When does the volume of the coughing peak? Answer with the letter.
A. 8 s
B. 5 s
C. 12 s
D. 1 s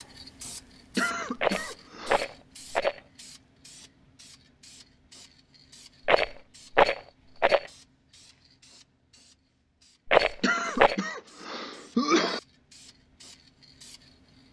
C.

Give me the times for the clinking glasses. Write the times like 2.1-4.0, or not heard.
not heard.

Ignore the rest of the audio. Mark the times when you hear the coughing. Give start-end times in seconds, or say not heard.
0.9-2.2, 10.4-12.4.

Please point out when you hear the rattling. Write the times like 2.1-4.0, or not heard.
1.4-3.0, 6.0-7.7, 10.1-11.0.